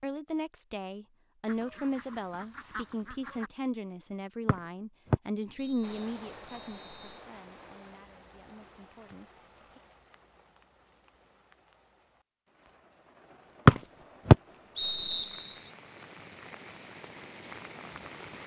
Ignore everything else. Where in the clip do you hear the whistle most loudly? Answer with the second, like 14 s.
14 s.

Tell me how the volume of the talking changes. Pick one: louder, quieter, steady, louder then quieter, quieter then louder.
quieter.